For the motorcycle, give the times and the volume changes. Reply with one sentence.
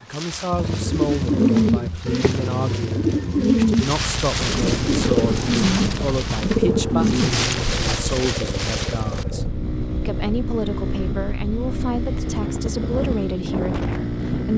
The motorcycle can be heard from 0.0 to 14.5 s, at a steady volume.